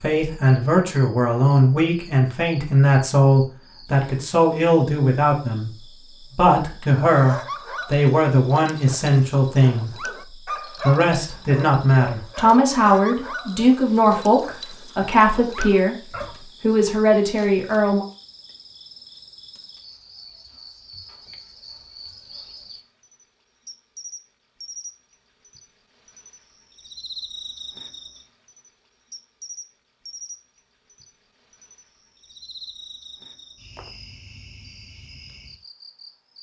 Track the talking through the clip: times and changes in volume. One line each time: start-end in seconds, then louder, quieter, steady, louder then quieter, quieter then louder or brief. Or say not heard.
0.0-18.1 steady.